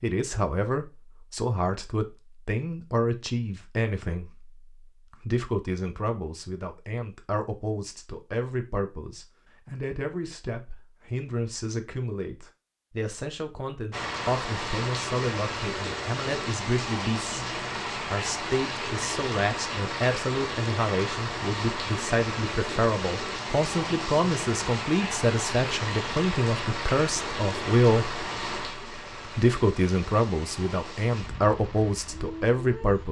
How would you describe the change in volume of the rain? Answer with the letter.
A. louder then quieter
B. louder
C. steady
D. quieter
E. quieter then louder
D.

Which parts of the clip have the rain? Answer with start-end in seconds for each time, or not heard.
13.9-33.0.